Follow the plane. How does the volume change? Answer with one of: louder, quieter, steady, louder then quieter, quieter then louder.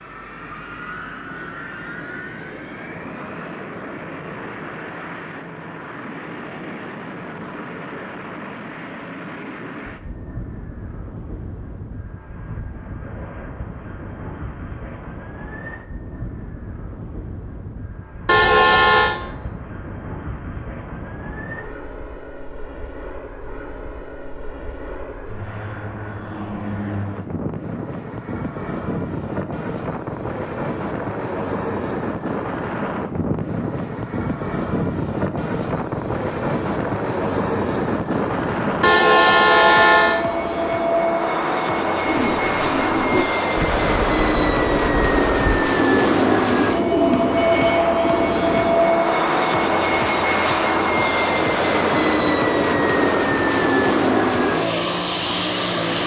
louder.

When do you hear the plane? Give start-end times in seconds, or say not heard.
0.0-56.0.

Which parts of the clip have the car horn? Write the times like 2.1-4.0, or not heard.
18.2-19.2, 38.8-40.2.